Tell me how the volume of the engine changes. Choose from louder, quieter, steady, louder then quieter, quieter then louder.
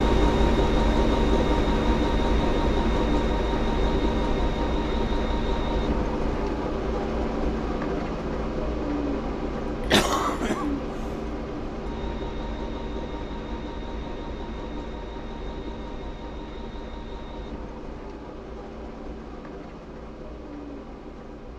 quieter.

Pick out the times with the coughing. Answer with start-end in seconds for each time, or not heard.
9.9-10.7.